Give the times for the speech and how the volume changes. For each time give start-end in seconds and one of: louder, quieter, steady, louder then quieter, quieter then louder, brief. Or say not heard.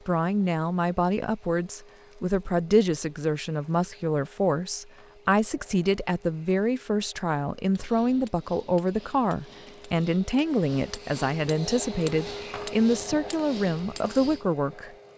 0.1-14.9 steady.